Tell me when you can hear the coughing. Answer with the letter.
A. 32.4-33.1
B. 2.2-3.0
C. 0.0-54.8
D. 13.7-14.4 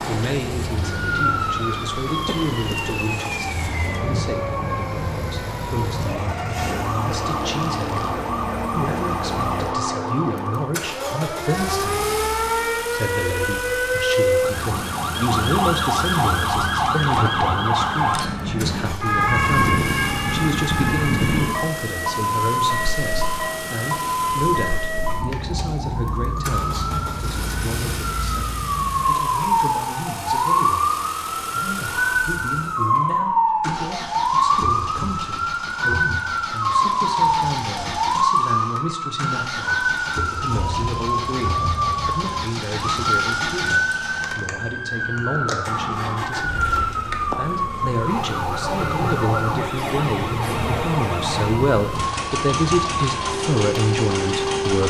B.